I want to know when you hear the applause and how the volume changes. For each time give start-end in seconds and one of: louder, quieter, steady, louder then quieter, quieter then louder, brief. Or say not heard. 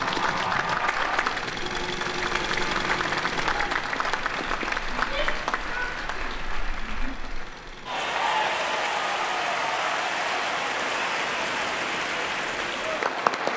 0.0-13.5 quieter then louder.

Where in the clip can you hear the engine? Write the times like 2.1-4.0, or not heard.
0.0-13.5.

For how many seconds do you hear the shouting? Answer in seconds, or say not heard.
2 s.